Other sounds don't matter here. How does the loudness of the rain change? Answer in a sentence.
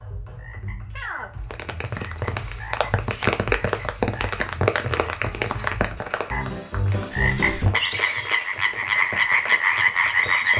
The volume of the rain goes down.